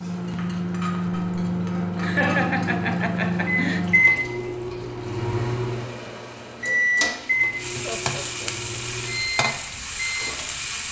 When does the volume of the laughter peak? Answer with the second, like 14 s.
2 s.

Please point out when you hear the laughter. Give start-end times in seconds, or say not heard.
2.0-3.9, 7.8-8.6.